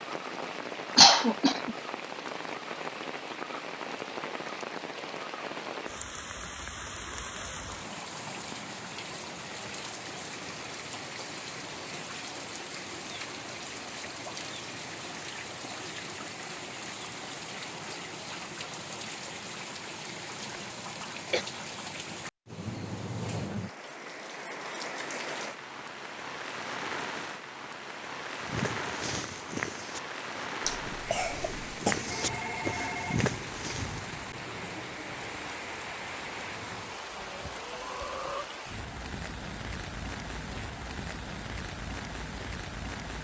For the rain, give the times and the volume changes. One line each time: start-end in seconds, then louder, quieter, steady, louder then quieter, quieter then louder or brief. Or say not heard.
0.0-43.1 steady.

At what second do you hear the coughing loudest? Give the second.
1 s.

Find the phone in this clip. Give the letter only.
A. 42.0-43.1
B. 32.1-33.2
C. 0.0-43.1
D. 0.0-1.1
B.